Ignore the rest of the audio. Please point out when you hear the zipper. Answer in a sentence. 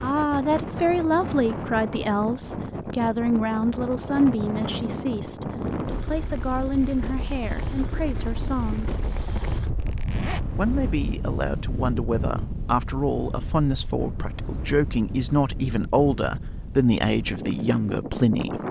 The zipper can be heard from 9.8 to 10.5 s.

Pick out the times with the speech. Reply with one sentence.
The speech can be heard from 0.0 to 8.9 s and from 10.5 to 18.6 s.